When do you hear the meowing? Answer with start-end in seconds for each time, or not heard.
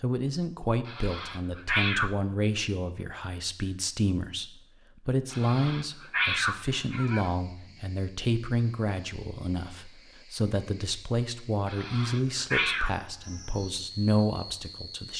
0.8-2.1, 5.3-7.3, 11.7-12.9.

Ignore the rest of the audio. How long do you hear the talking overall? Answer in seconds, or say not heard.
15 s.